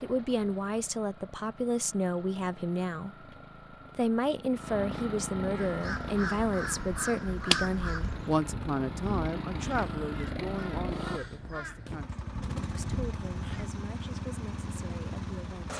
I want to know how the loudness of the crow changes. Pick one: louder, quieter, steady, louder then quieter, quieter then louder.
louder then quieter.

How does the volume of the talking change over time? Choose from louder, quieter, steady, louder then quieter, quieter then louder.
quieter.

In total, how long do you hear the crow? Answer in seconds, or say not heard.
8 s.